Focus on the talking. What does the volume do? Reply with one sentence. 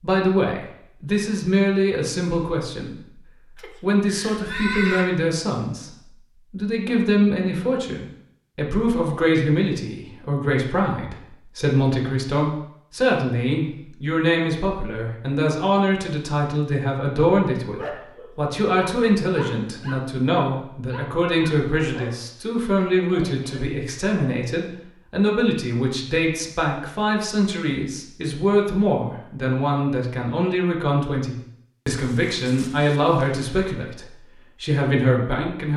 The loudness of the talking stays about the same.